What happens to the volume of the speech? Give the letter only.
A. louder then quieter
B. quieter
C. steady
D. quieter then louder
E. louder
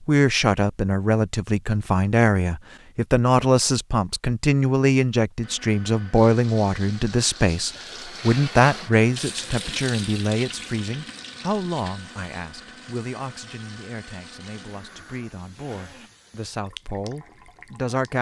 B.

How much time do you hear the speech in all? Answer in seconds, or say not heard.
18 s.